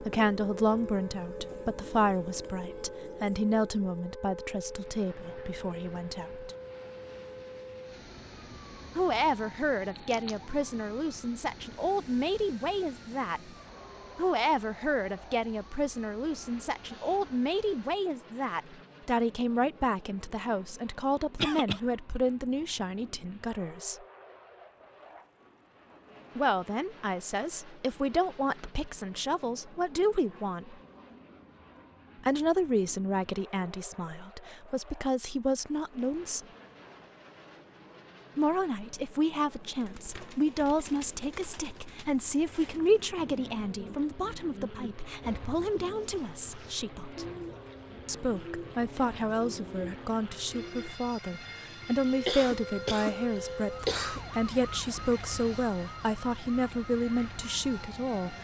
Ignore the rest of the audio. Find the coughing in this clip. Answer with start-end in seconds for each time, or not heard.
21.4-21.8, 52.2-54.2.